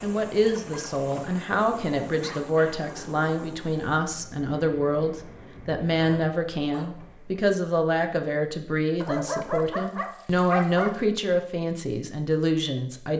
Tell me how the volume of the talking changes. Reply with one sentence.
The loudness of the talking stays about the same.